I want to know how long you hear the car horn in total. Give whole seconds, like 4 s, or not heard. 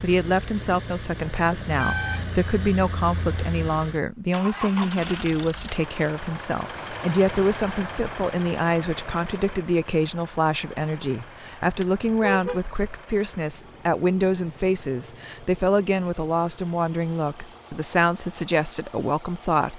3 s.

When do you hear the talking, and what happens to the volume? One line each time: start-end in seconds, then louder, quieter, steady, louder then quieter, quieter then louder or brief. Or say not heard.
0.0-19.7 steady.